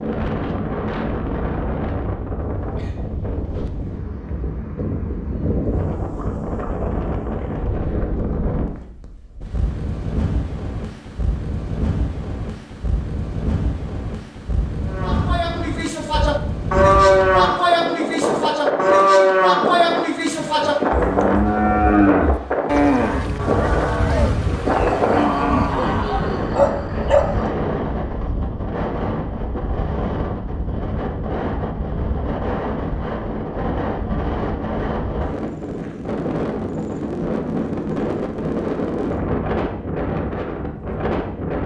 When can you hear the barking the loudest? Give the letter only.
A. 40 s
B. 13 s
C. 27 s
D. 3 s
C.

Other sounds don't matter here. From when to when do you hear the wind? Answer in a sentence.
You can hear the wind from 0.0 to 41.6 s.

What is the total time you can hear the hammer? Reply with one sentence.
The hammer can't be heard in this clip.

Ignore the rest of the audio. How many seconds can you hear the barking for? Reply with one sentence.
You can hear the barking for 3 seconds altogether.